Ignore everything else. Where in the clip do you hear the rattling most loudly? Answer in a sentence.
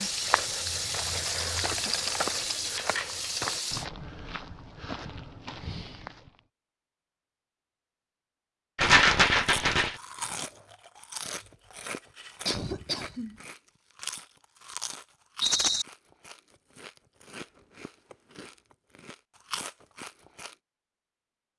The volume of the rattling peaks at 9 seconds.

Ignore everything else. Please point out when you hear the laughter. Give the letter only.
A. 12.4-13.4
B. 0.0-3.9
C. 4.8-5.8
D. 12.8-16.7
A.